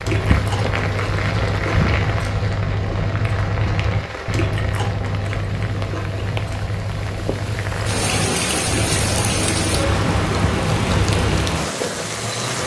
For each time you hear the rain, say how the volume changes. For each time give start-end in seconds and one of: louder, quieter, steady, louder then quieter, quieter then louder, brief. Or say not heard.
0.0-12.6 quieter then louder.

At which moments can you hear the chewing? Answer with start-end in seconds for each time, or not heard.
0.0-11.4.